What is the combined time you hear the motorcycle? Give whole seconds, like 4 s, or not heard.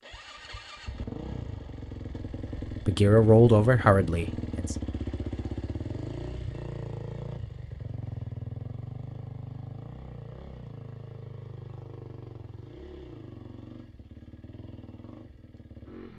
16 s.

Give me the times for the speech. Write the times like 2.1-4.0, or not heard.
2.9-4.8.